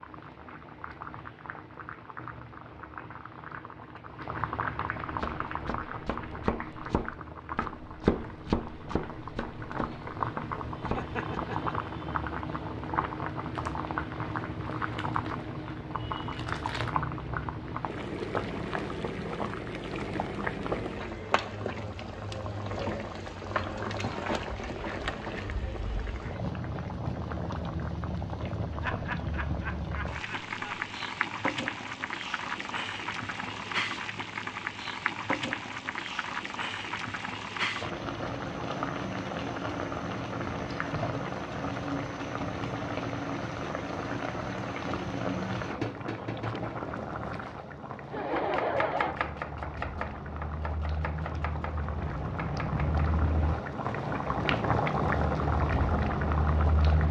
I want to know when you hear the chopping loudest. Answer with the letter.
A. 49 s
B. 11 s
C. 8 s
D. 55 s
C.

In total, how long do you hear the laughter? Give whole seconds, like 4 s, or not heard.
4 s.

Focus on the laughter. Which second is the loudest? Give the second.
49 s.